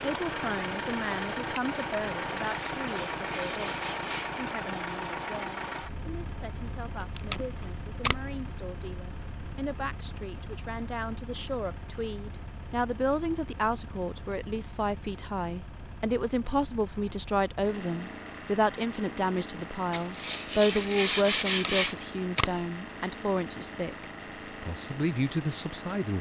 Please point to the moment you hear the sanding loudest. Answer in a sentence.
The loudest moment of the sanding is at 22 seconds.